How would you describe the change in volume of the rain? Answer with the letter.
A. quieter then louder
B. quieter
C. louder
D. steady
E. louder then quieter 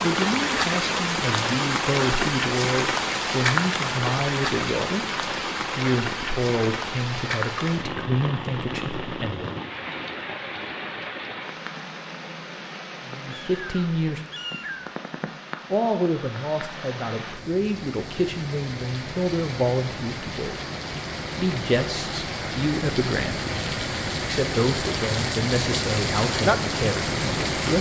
A.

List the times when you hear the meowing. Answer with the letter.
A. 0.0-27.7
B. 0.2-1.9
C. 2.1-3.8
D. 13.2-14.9
D.